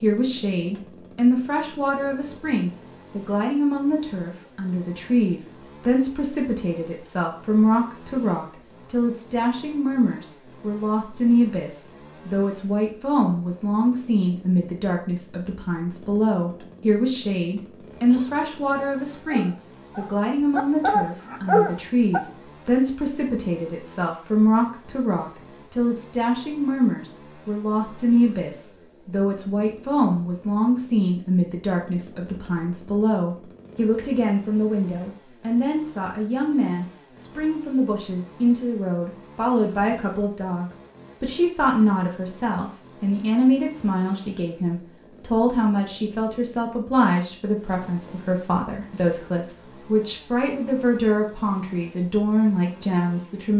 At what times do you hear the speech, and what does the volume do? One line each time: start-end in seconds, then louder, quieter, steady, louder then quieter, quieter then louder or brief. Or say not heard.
0.0-53.5 steady.